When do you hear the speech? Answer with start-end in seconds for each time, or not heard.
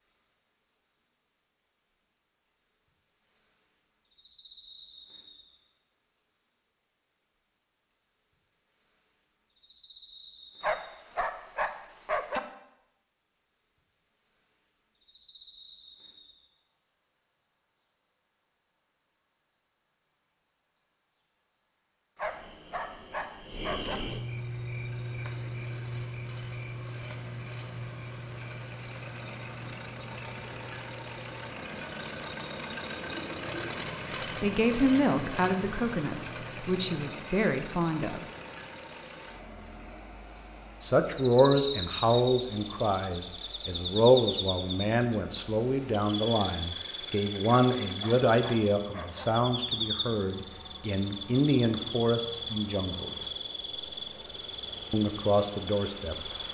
34.4-38.2, 40.8-53.3, 54.9-56.3.